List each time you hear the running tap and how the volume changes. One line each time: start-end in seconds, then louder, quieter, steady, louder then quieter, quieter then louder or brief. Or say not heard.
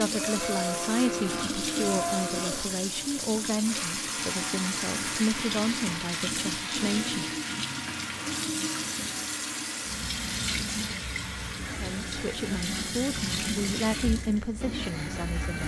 0.0-15.6 steady.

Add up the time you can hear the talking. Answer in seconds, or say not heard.
11 s.